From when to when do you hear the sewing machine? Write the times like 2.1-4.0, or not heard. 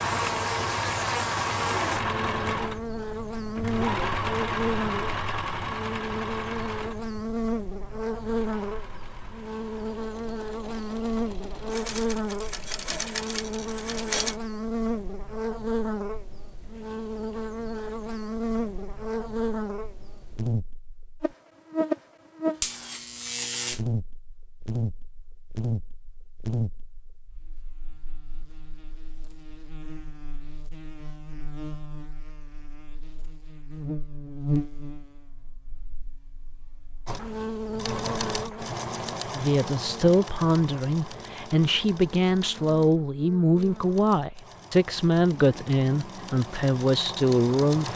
0.0-14.4, 37.0-47.9.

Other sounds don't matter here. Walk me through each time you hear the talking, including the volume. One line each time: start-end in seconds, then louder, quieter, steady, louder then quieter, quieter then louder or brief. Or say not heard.
39.4-47.9 steady.